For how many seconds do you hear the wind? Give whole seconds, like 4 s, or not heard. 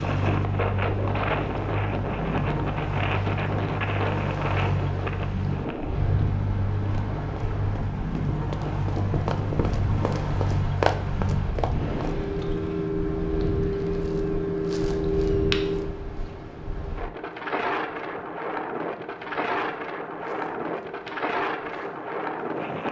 23 s.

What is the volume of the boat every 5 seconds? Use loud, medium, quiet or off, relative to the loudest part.
loud, loud, loud, loud, quiet.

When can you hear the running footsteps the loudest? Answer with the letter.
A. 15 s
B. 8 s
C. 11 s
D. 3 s
C.